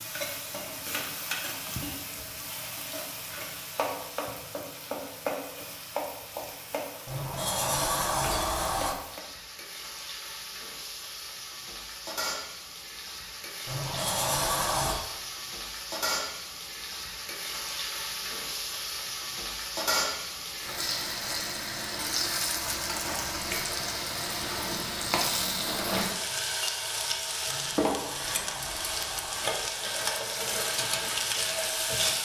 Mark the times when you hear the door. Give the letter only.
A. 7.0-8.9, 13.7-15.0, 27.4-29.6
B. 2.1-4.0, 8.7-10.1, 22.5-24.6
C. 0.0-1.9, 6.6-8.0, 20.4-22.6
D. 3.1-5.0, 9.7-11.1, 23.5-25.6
A.